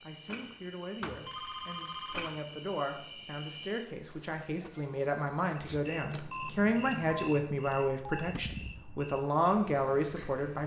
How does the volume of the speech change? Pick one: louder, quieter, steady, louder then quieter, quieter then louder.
louder.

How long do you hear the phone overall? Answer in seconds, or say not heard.
3 s.